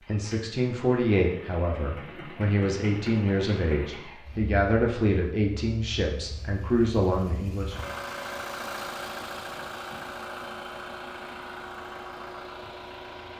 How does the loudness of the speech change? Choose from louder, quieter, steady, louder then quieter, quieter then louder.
steady.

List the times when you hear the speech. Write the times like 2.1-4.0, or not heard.
0.1-7.9.